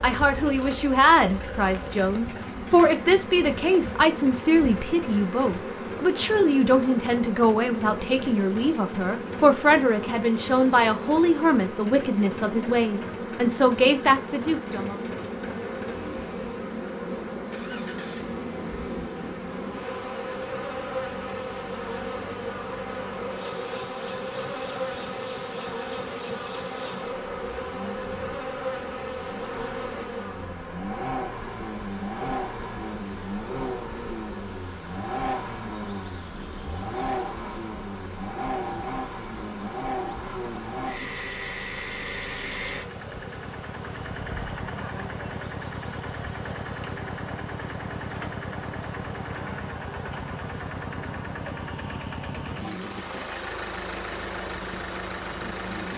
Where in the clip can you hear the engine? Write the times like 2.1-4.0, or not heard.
0.2-55.9.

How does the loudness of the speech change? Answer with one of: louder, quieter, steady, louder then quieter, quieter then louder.
steady.